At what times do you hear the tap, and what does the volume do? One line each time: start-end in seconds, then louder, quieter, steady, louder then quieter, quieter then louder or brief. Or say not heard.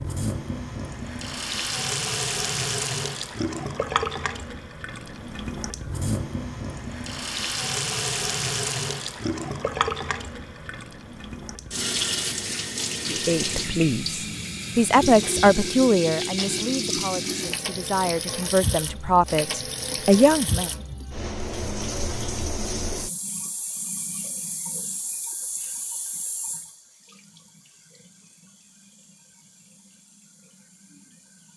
0.0-31.5 quieter.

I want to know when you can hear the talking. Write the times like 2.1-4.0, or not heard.
13.1-20.7.